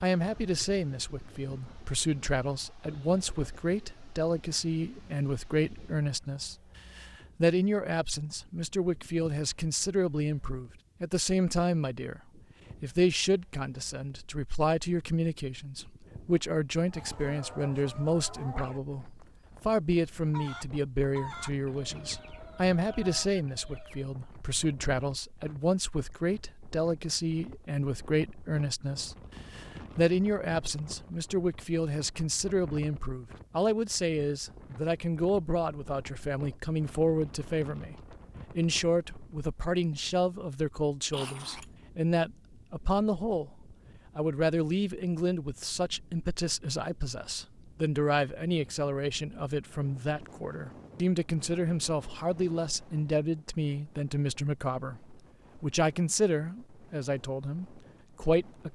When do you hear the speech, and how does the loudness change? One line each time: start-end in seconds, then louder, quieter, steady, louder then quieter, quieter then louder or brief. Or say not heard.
0.0-38.0 steady
38.5-58.7 steady.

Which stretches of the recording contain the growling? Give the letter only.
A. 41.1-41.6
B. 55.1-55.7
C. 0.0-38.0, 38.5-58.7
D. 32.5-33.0
A.